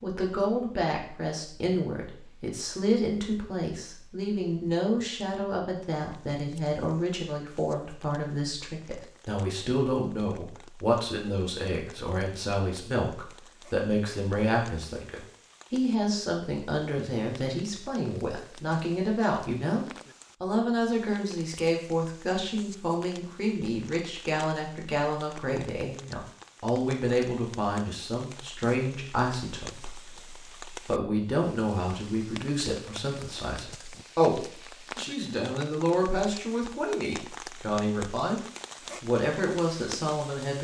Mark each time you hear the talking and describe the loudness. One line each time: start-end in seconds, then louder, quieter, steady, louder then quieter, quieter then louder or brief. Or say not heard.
0.0-38.4 steady
39.0-40.5 brief.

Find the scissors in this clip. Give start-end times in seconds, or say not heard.
not heard.